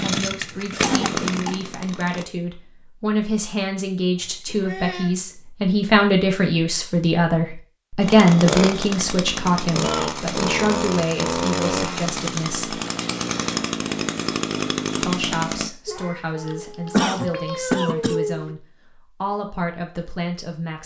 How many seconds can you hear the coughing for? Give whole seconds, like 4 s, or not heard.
2 s.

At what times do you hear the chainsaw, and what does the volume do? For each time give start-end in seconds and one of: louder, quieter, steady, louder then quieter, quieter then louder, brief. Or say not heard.
0.0-2.2 brief
8.0-15.7 steady.